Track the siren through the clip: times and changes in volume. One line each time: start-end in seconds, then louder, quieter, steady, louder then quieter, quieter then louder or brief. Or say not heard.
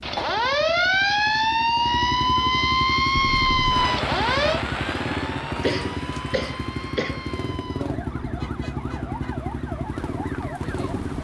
0.0-11.1 quieter.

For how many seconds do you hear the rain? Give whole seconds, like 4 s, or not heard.
8 s.